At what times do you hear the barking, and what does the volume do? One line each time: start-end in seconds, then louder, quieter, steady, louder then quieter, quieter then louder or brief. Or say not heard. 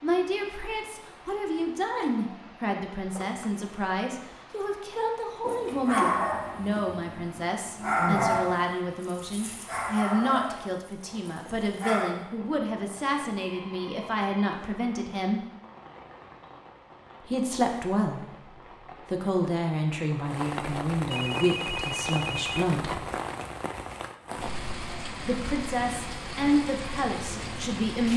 5.4-12.1 quieter.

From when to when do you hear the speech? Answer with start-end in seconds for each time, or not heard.
0.0-15.4, 17.2-23.0, 25.2-28.1.